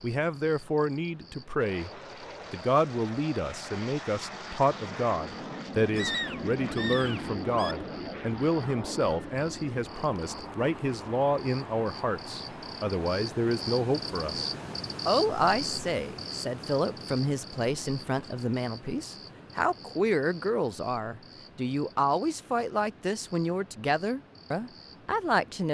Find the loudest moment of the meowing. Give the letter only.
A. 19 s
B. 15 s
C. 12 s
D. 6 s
D.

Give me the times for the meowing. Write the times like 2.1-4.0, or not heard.
6.0-7.8.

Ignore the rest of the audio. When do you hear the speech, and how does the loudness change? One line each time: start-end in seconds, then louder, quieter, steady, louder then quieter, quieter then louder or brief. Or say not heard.
0.0-1.9 brief
2.5-25.6 steady.